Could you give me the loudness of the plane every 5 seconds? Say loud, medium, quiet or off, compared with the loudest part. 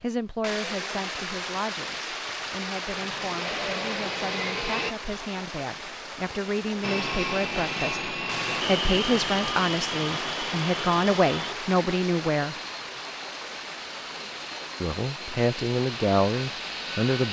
loud, loud, medium, medium.